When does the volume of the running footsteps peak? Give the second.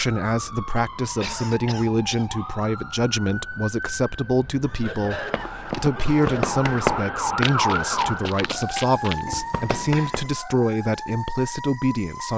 7 s.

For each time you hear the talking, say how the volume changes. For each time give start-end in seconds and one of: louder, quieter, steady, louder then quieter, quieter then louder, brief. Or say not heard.
0.0-12.3 steady.